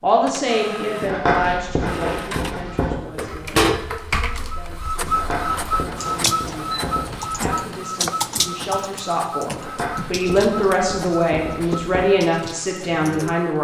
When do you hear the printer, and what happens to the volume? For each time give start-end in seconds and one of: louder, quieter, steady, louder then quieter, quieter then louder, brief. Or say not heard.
0.0-13.5 louder then quieter.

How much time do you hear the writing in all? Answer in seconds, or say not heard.
7 s.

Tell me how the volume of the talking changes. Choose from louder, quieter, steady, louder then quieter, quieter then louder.
quieter then louder.